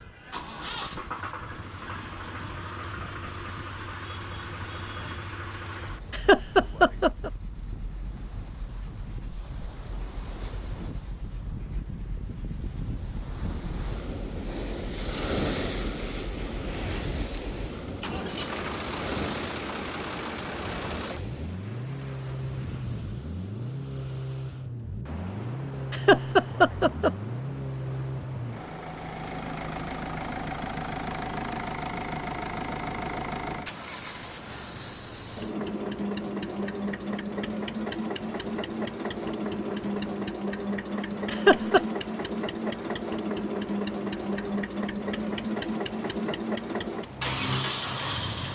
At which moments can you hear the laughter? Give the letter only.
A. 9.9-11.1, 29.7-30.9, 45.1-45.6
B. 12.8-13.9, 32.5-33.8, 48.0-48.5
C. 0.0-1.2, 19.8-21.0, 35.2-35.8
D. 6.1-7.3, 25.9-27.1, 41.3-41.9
D.